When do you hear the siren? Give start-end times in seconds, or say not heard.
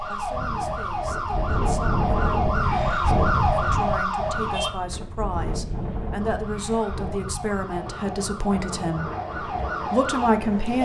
0.0-4.7, 6.2-10.8.